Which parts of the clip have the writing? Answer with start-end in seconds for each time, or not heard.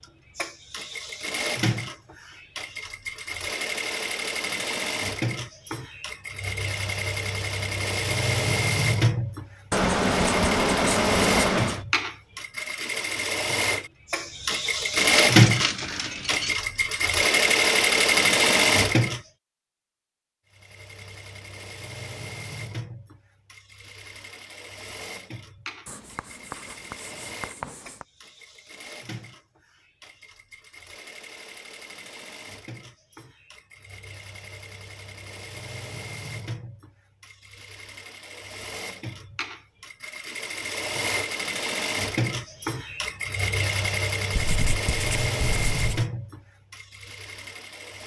9.7-11.8, 25.9-28.1, 44.3-46.0.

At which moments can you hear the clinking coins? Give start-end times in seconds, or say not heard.
14.9-16.6.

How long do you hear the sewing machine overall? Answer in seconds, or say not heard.
47 s.